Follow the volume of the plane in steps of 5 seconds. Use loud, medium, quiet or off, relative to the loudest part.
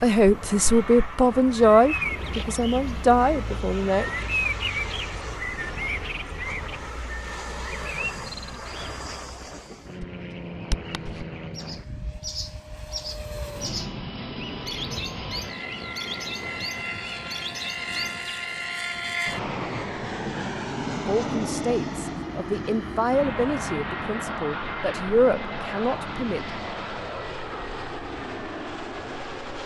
medium, medium, medium, loud, loud, loud.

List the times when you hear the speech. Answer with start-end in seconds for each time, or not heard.
0.0-4.1, 20.9-26.4.